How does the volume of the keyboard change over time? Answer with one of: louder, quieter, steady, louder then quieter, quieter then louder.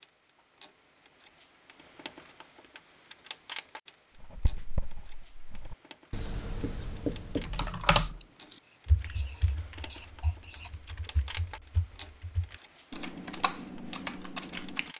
quieter then louder.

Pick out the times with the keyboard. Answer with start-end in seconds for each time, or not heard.
7.5-14.9.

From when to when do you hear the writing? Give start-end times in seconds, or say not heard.
4.2-10.7.